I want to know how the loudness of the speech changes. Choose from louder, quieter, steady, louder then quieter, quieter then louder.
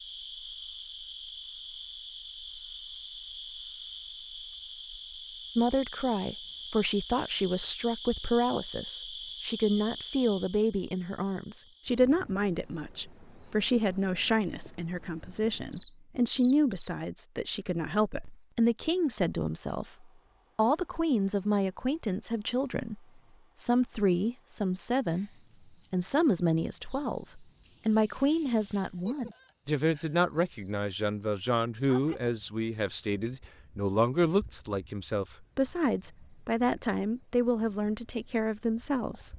steady.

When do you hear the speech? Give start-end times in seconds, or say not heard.
5.5-25.3, 25.9-39.3.